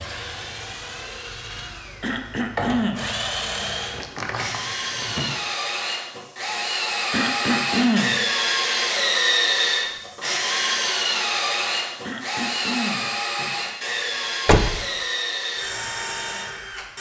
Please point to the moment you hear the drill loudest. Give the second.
9 s.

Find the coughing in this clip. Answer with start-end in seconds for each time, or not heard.
2.0-3.1, 7.1-8.2, 12.0-13.1.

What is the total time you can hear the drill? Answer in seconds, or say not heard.
17 s.